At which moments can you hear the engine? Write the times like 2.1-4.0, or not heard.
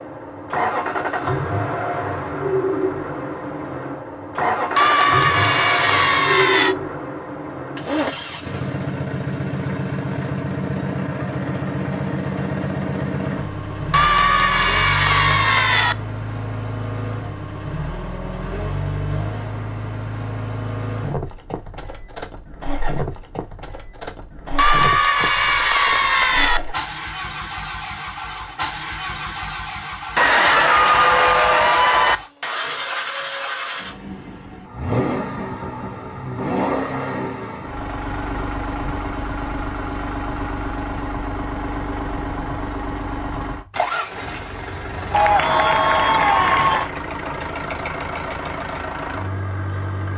0.0-50.1.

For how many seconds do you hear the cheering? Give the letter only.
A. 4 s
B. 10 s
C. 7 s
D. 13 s
B.